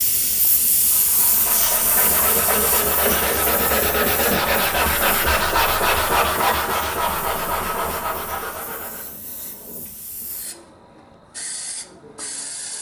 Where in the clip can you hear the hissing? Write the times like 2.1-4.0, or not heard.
0.0-12.7.